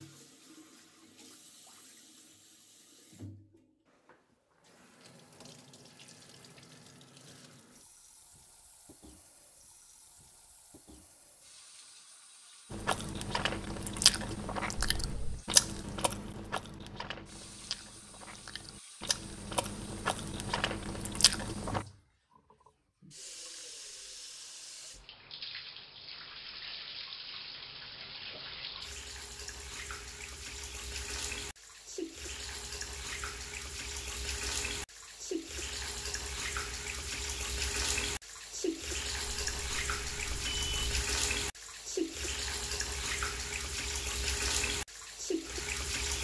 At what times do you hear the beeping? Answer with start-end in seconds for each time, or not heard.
14.8-15.4, 39.2-41.1.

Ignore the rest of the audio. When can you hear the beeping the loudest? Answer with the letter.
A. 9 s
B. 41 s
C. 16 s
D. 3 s
B.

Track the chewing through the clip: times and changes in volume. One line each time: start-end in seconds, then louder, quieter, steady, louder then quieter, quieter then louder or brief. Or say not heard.
12.7-21.9 quieter then louder.